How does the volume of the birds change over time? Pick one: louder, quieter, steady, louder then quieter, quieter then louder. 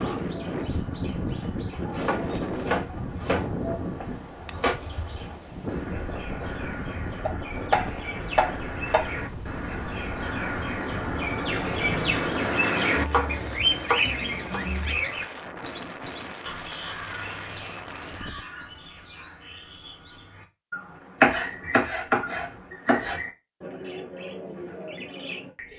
louder then quieter.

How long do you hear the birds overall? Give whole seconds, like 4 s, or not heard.
26 s.